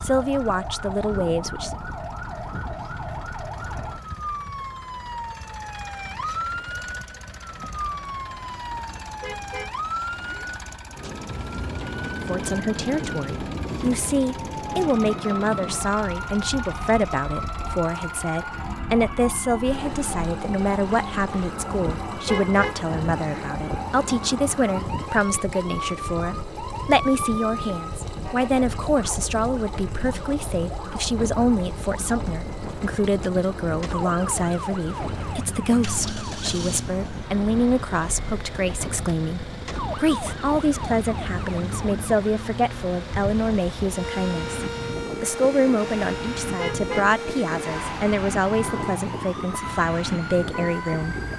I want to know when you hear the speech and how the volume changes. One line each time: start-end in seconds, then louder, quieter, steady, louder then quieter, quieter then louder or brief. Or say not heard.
0.0-1.7 brief
12.2-51.1 steady.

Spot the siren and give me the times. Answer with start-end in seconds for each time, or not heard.
0.0-51.3.